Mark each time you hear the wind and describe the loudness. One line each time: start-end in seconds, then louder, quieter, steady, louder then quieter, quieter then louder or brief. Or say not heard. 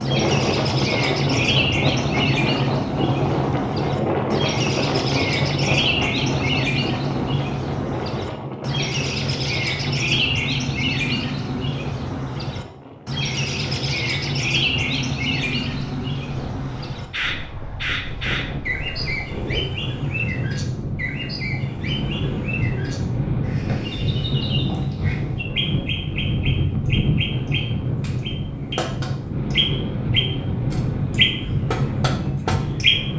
0.0-33.1 quieter then louder.